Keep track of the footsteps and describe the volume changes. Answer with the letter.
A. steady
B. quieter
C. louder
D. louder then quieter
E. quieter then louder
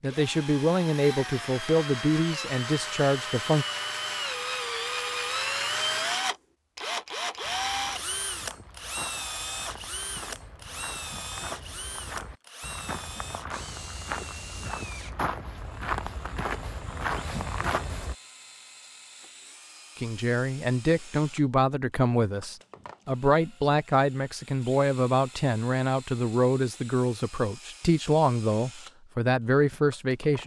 C.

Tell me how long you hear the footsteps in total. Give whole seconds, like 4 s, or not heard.
11 s.